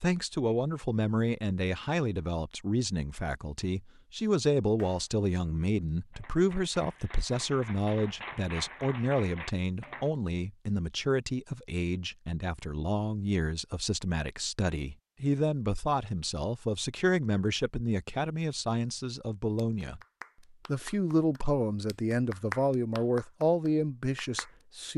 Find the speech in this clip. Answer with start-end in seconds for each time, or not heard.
0.0-20.0, 20.6-24.9.